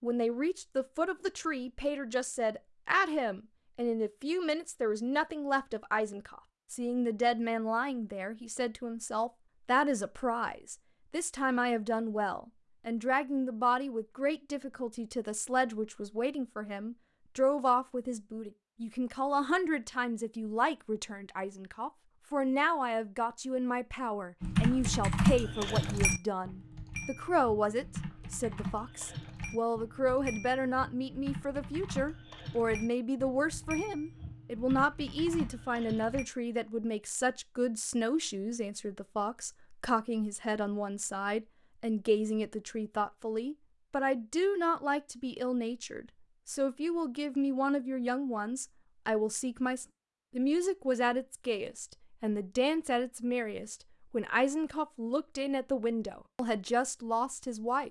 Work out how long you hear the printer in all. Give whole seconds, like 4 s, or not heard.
not heard.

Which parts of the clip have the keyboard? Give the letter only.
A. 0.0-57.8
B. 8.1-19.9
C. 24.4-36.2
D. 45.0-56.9
C.